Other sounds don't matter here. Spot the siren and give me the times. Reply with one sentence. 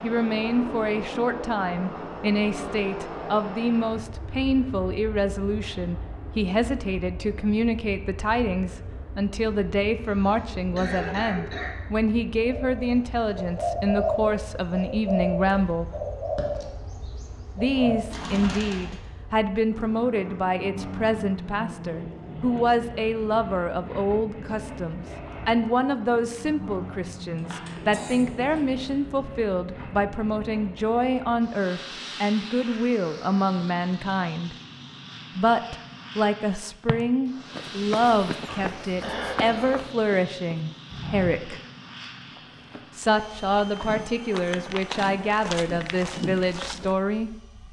The siren can't be heard in this clip.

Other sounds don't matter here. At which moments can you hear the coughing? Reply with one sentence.
You can hear the coughing from 10.2 to 11.8 s, from 27.5 to 28.8 s and from 38.5 to 39.9 s.